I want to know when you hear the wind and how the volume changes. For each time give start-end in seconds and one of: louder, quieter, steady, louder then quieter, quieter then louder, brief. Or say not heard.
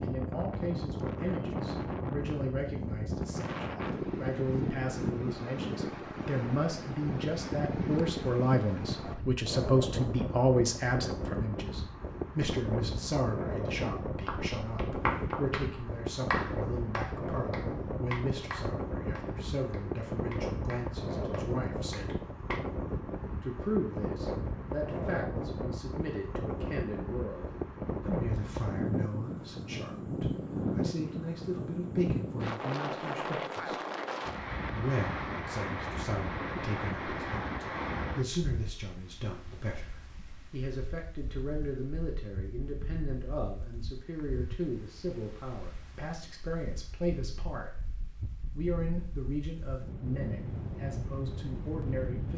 0.0-52.3 quieter.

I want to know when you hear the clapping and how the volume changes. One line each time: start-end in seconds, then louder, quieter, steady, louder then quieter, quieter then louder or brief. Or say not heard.
14.2-22.6 quieter.